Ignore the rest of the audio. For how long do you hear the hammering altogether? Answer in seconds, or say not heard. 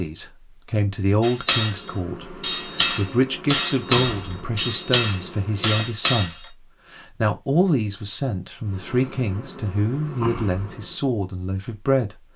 5 s.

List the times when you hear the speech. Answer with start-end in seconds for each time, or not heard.
0.0-12.2.